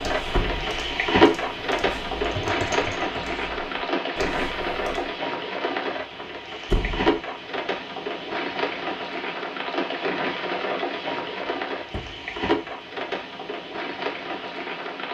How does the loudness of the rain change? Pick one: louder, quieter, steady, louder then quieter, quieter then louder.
quieter.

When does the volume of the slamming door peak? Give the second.
7 s.